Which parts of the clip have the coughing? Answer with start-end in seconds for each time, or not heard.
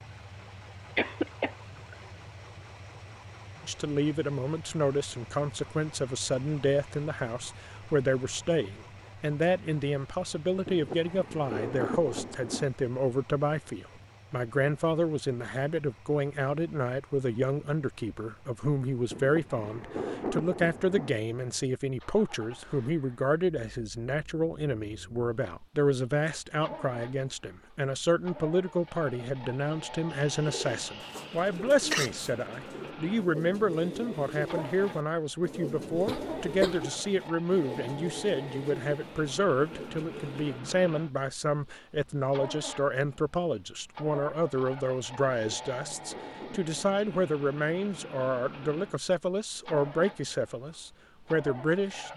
0.9-1.9, 30.1-32.1, 35.9-36.9.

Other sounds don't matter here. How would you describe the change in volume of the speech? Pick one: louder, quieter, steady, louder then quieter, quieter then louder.
steady.